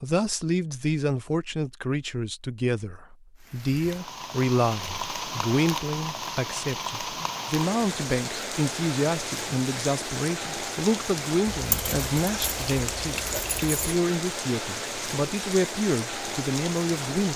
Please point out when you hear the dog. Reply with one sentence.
The dog can't be heard in this clip.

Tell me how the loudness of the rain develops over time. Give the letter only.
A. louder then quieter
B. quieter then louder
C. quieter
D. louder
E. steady
E.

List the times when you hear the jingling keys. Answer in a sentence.
The jingling keys can be heard from 11.5 to 14.0 s.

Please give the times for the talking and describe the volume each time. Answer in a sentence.
You can hear the talking from 0.0 to 17.3 s, at a steady volume.